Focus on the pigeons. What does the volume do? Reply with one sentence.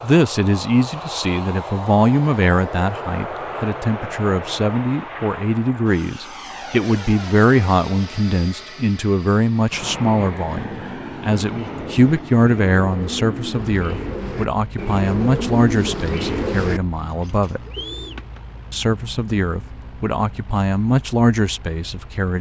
The loudness of the pigeons goes up, then down.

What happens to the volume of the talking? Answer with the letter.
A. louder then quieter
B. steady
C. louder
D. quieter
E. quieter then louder
B.